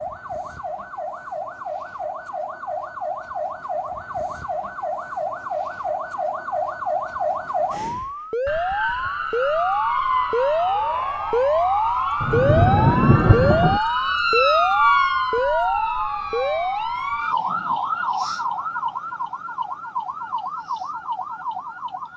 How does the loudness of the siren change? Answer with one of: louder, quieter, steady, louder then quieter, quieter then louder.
louder then quieter.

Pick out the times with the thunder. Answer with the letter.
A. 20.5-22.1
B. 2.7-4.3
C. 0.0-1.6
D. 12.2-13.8
D.